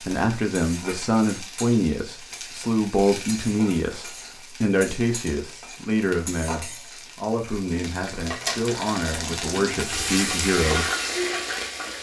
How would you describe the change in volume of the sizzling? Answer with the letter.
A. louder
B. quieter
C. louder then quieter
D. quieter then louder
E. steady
A.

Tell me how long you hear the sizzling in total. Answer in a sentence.
You can hear the sizzling for 12 seconds altogether.